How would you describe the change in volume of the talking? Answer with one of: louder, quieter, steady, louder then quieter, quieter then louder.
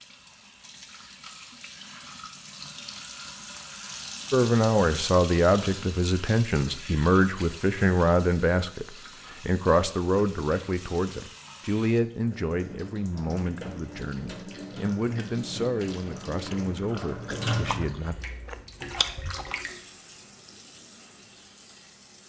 quieter.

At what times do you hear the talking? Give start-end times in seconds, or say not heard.
4.3-18.1.